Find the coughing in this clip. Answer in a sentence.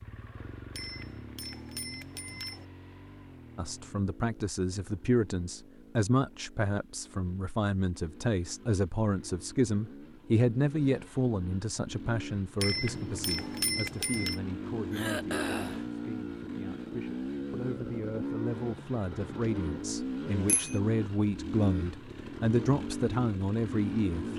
The coughing can be heard from 14.9 to 15.8 s.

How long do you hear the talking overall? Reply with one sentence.
You can hear the talking for 21 seconds altogether.